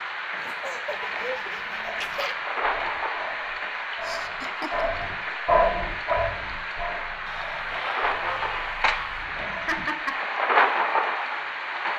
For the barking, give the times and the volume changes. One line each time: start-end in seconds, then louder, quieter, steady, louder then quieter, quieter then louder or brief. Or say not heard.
1.8-10.2 louder then quieter.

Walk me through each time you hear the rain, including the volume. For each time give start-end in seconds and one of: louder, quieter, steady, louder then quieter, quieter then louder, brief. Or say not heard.
0.0-11.9 louder.